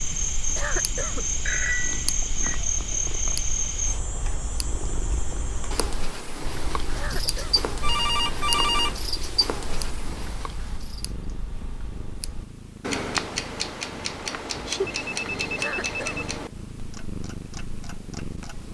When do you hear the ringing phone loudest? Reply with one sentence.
The loudest moment of the ringing phone is at 9 seconds.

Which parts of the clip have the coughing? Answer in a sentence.
The coughing can be heard from 0.6 to 1.2 s, from 7.0 to 7.7 s and from 15.6 to 16.2 s.